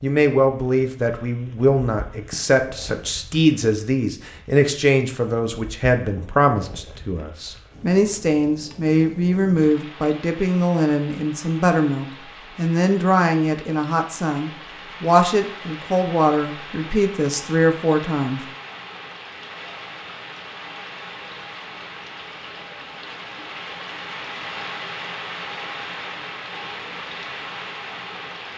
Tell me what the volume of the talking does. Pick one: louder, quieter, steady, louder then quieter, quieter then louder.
steady.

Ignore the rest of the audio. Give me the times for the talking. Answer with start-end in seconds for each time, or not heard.
0.0-18.4.